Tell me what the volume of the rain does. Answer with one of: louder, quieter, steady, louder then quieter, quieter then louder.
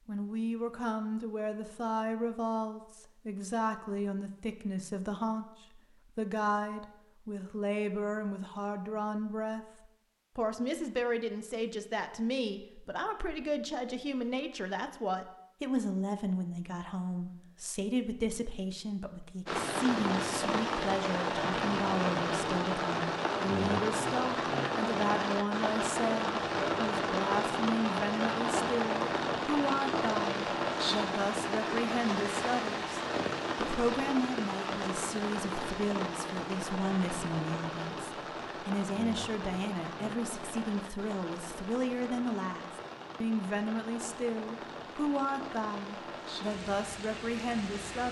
quieter.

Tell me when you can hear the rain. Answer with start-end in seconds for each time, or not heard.
19.4-48.0.